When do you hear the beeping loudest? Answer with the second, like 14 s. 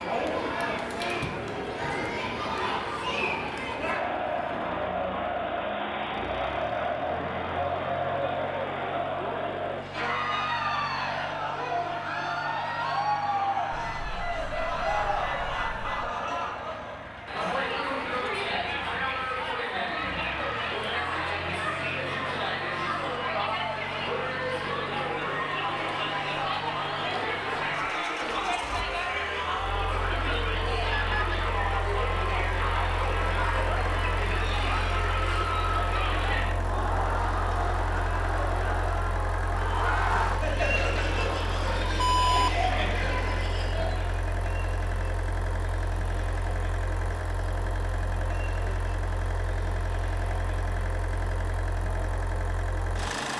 42 s.